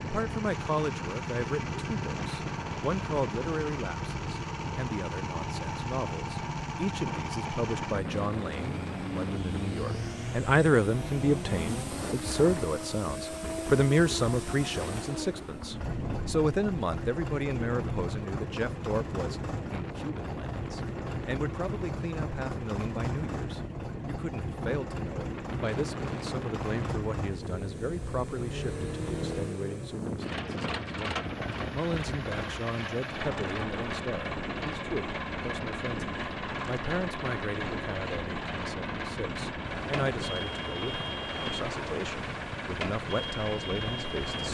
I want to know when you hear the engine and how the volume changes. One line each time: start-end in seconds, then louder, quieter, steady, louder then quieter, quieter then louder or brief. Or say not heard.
0.0-44.5 steady.